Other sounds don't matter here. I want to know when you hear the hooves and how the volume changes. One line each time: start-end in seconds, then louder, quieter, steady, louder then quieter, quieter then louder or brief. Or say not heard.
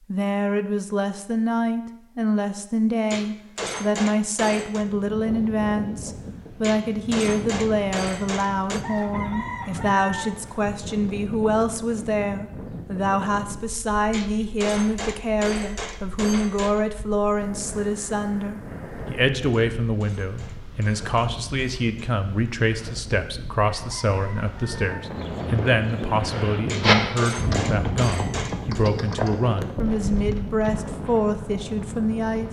25.1-30.8 louder then quieter.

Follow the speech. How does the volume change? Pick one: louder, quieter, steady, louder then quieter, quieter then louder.
steady.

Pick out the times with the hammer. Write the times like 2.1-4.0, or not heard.
3.1-4.8, 6.6-8.8, 14.1-16.8, 19.5-22.0, 26.6-28.9.